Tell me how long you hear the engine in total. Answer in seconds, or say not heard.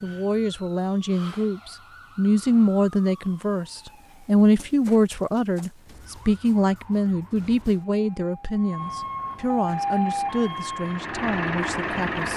3 s.